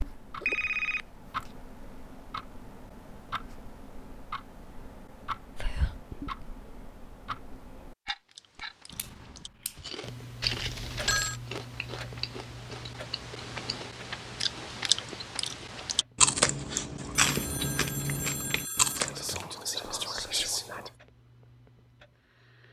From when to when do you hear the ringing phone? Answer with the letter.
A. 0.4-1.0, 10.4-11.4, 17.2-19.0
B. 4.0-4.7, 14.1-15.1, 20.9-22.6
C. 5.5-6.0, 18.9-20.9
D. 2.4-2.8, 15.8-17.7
A.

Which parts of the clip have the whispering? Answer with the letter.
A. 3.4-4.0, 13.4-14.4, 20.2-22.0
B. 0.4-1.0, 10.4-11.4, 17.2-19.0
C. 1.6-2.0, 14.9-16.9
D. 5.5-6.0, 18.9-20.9
D.